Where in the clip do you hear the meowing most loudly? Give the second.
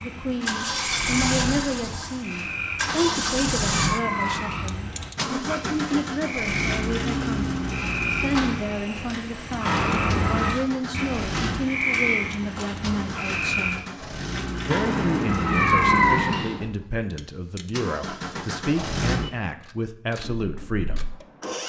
16 s.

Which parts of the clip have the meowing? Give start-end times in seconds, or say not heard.
2.9-4.8, 9.7-10.6, 14.7-16.6.